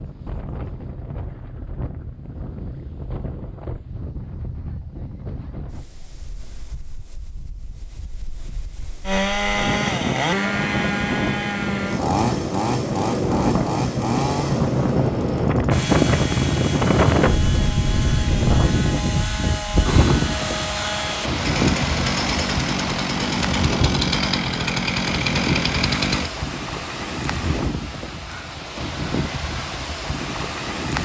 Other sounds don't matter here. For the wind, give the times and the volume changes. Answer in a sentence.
The wind can be heard from 0.0 to 30.9 s, getting louder then quieter.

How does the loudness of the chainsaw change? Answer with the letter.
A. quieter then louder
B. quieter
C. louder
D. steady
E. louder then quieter
A.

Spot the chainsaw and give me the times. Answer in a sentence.
The chainsaw can be heard from 9.1 to 26.3 s.